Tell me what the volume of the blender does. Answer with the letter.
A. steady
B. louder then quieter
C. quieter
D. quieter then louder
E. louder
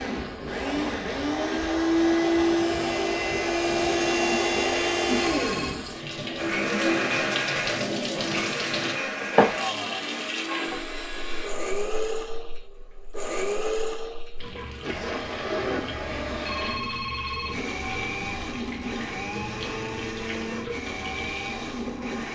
C.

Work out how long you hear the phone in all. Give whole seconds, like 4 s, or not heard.
2 s.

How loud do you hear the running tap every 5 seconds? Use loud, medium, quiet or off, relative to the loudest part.
medium, loud, medium, medium, medium.